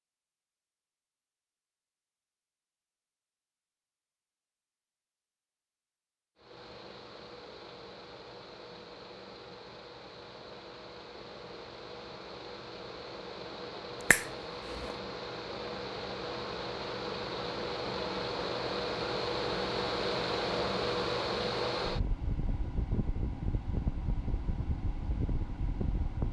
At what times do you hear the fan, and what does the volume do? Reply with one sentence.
You can hear the fan from 6.3 to 26.2 s, getting louder then quieter.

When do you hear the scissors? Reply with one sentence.
The scissors can't be heard in this clip.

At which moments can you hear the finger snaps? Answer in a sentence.
You can hear the finger snaps from 14.1 to 14.9 s.